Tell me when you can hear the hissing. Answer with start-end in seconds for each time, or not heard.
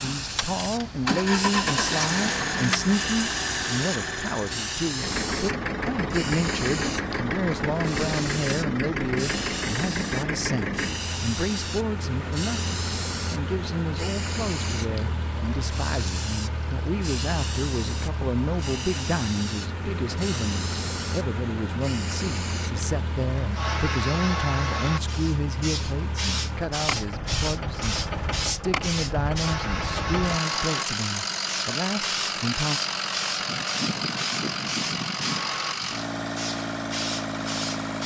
0.0-38.0.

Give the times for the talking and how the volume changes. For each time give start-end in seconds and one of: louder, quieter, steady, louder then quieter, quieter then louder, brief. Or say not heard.
0.0-32.8 steady.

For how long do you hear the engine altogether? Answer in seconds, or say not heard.
38 s.